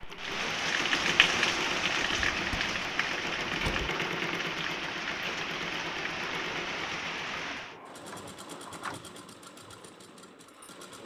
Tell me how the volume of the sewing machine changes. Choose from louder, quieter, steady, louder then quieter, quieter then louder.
quieter.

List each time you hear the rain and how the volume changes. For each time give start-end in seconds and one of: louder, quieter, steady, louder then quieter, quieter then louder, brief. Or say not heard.
0.0-7.8 quieter.